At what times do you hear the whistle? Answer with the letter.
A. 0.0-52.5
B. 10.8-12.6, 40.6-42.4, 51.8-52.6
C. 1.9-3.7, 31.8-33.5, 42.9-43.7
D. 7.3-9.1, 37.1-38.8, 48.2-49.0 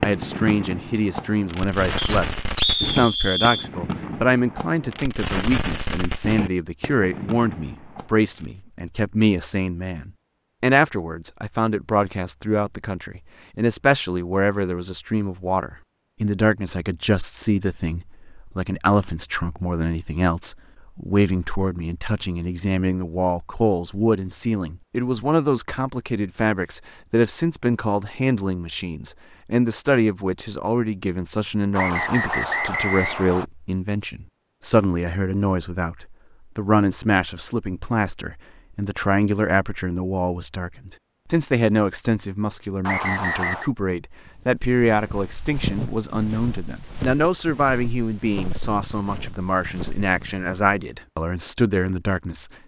C.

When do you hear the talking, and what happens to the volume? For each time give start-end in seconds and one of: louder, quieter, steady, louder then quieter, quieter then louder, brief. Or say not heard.
0.0-52.5 steady.